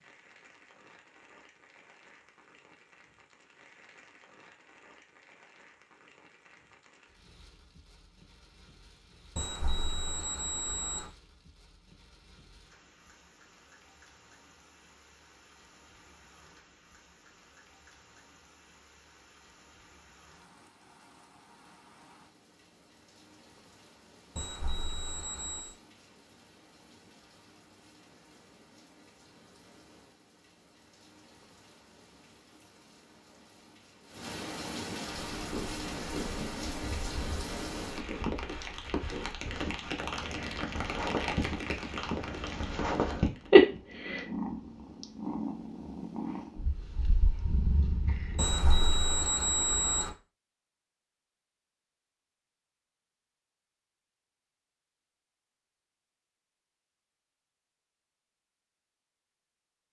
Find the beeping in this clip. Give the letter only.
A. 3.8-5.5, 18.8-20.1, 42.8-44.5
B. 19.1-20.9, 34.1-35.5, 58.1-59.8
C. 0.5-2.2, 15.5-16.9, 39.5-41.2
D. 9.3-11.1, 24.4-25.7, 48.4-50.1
D.